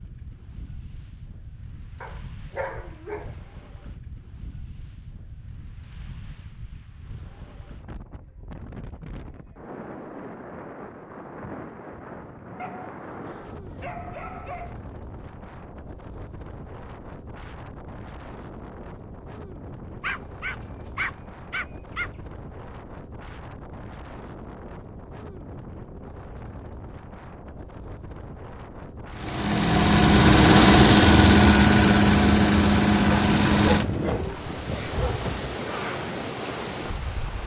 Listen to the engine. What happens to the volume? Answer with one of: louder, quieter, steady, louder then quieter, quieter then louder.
quieter.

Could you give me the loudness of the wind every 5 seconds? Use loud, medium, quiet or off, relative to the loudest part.
quiet, quiet, medium, quiet, quiet, quiet, loud, loud.